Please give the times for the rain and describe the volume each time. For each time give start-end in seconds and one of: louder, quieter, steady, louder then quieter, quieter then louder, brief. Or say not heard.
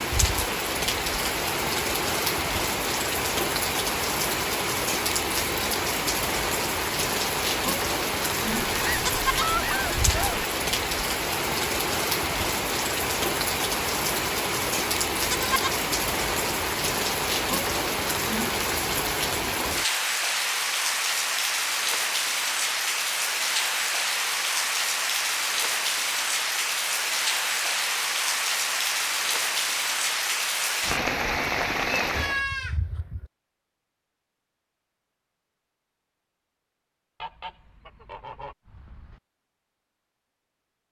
0.0-32.5 steady.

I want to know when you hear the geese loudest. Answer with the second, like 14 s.
10 s.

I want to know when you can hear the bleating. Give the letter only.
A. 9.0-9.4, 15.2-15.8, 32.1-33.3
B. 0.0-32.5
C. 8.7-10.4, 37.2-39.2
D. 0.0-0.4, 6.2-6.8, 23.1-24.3
A.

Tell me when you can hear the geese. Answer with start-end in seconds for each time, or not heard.
8.7-10.4, 37.2-39.2.